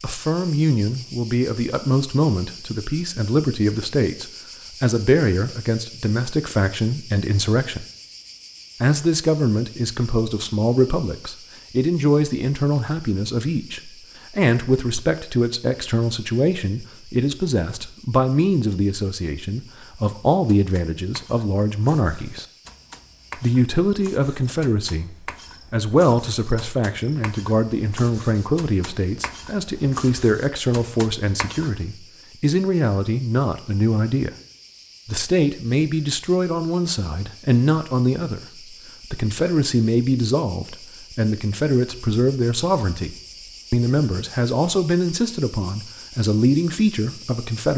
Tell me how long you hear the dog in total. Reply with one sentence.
You can't hear the dog here.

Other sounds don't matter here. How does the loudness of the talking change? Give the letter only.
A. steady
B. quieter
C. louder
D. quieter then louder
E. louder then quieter
A.